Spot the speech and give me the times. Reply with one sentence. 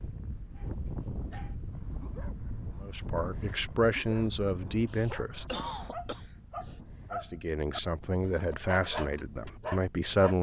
You can hear the speech from 2.8 to 5.5 s and from 7.1 to 10.3 s.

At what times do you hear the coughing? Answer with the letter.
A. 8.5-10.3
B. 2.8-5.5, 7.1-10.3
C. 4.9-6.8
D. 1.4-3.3
C.